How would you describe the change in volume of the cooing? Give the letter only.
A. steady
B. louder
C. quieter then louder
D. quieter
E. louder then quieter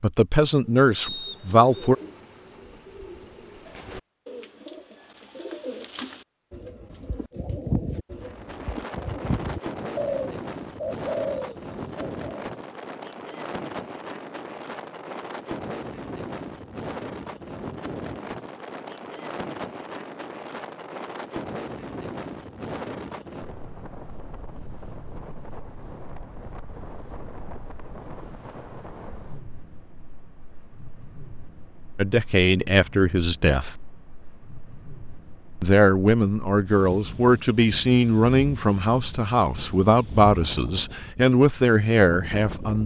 B.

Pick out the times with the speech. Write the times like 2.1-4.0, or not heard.
0.0-1.9, 31.9-33.8, 35.6-42.8.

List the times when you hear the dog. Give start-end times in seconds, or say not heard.
not heard.